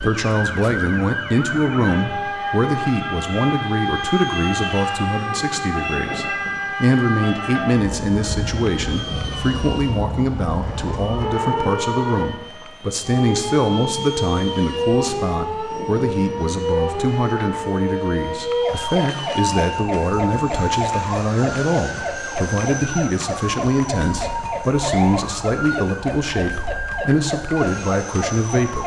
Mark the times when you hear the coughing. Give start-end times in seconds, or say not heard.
not heard.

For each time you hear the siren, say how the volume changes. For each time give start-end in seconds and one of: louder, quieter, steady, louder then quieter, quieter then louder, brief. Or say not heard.
0.0-28.8 steady.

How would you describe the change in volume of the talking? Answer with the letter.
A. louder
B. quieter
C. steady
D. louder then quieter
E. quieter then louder
C.